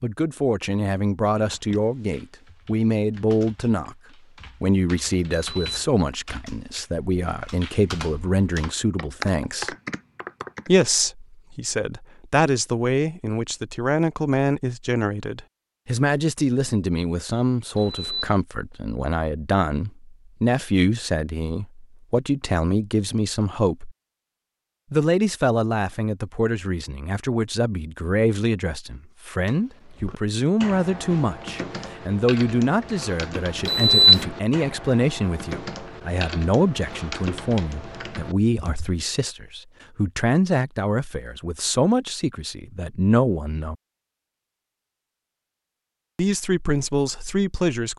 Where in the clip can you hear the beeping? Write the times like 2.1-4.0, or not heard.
5.3-5.8, 17.8-18.4, 33.6-34.2.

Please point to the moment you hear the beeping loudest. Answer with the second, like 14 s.
34 s.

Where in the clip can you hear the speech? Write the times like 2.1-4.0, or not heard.
0.0-4.0, 4.6-9.8, 10.7-23.9, 24.9-43.8, 46.1-47.9.